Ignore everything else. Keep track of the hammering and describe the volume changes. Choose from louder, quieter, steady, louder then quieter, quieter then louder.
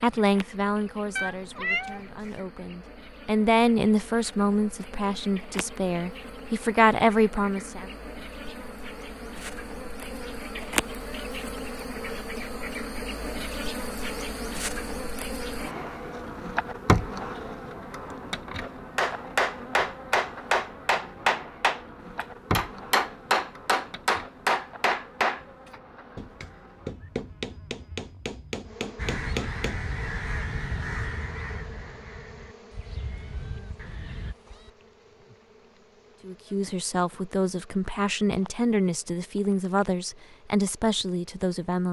quieter.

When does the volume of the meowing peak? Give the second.
2 s.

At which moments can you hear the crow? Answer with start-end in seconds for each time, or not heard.
28.9-34.4.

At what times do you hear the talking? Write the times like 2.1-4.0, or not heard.
0.0-7.9, 36.2-41.8.